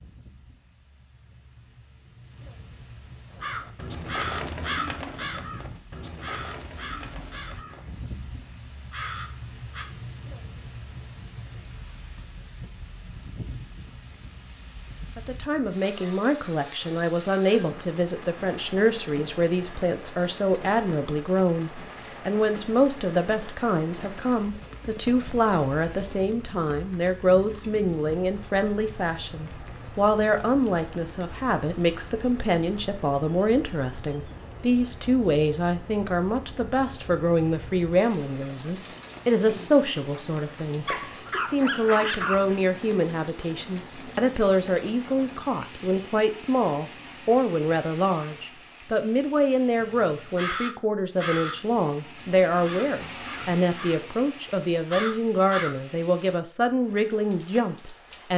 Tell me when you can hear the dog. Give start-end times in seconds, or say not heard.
40.9-42.5.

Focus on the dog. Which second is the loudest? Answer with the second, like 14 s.
42 s.